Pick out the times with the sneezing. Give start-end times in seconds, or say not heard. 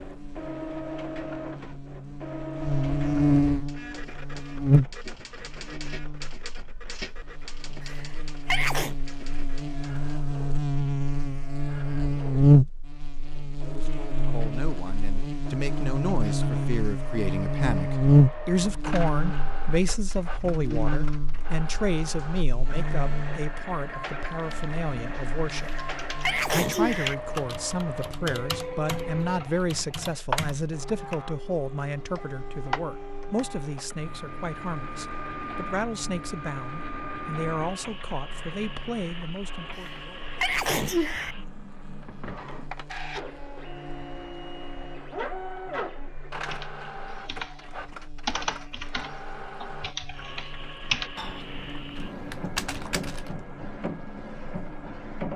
7.8-8.9, 25.6-27.1, 39.8-41.4.